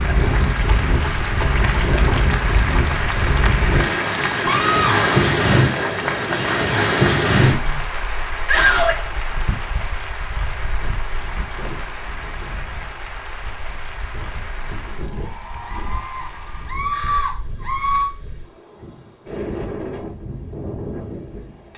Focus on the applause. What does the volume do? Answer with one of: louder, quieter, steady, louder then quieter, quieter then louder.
quieter.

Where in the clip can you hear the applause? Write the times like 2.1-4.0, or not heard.
0.0-16.9.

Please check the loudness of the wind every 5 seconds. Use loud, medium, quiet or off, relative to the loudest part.
loud, loud, quiet, quiet, quiet.